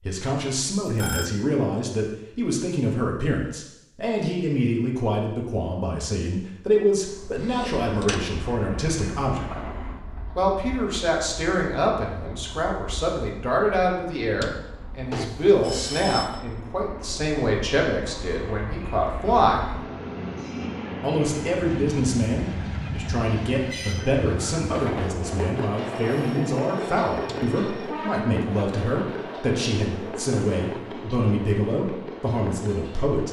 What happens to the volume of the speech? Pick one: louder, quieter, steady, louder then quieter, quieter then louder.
steady.